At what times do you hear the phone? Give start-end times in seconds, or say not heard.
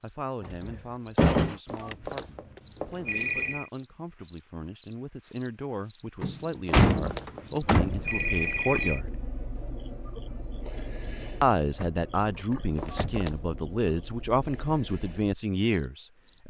1.6-3.7, 6.7-9.0, 12.8-13.4.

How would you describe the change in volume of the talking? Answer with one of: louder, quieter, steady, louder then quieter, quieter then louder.
louder.